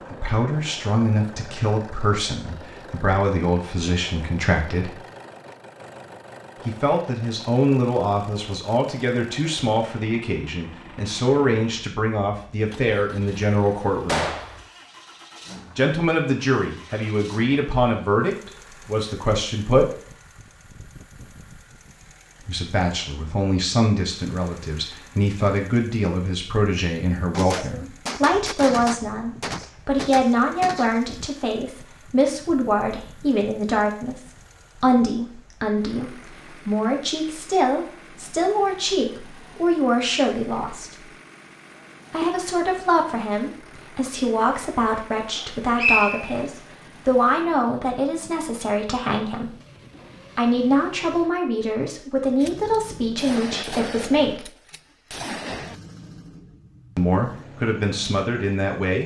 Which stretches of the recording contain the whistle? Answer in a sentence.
You can hear the whistle from 45.4 to 46.4 s.